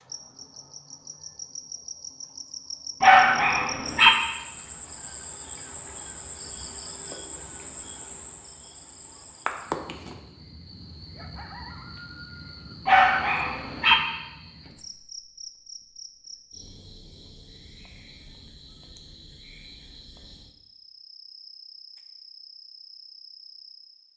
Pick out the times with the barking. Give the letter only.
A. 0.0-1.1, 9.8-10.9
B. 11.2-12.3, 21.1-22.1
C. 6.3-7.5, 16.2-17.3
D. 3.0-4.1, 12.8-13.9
D.